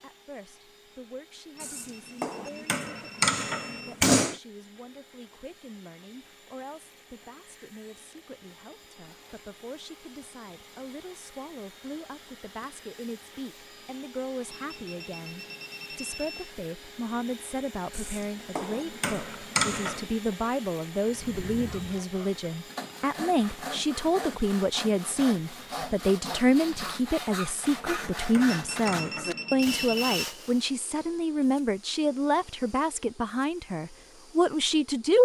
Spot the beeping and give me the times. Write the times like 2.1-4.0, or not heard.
1.6-4.0, 14.5-16.6, 28.4-30.3.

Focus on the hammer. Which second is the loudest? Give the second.
4 s.